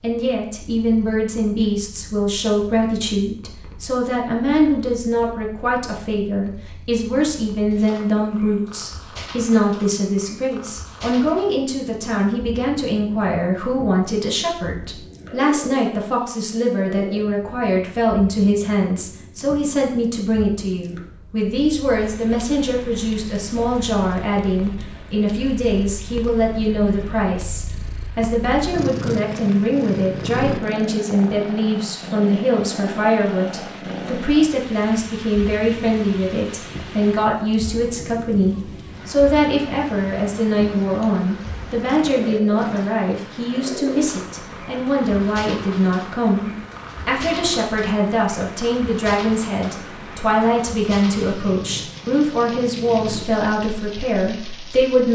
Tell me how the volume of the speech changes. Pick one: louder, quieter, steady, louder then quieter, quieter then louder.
steady.